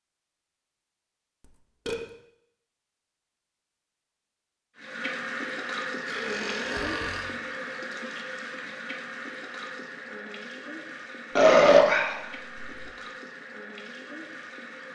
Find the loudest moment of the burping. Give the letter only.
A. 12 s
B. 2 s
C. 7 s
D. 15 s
A.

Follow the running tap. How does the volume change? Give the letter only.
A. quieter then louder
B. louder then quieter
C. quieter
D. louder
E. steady
C.